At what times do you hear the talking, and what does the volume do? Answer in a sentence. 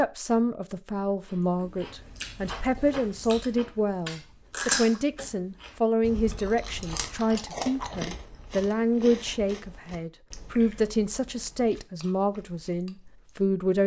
You can hear the talking from 0.0 to 13.8 s, at a steady volume.